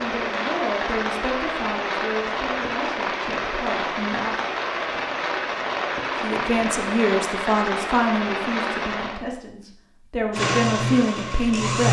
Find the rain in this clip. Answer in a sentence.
The rain can be heard from 0.0 to 9.2 s.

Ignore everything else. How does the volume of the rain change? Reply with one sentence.
The volume of the rain stays about the same.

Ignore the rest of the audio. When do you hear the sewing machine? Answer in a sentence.
The sewing machine can be heard from 10.3 to 11.8 s.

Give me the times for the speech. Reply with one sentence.
You can hear the speech from 0.0 to 4.3 s and from 6.2 to 11.8 s.